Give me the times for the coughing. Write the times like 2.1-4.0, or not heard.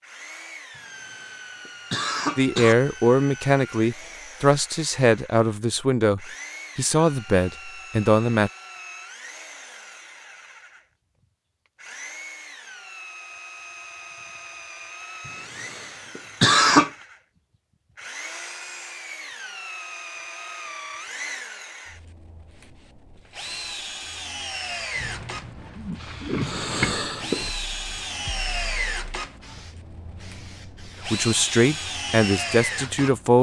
0.8-2.8, 15.2-16.9, 26.4-27.6.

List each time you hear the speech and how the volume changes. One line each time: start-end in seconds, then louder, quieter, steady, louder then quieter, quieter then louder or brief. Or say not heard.
2.4-8.5 steady
31.1-33.3 brief.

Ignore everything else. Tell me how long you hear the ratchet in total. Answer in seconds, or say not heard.
not heard.